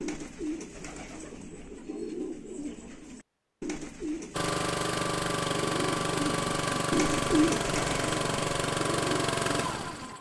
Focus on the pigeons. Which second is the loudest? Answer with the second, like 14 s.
7 s.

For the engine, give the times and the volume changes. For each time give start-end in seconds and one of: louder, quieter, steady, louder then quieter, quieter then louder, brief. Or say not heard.
4.3-10.1 steady.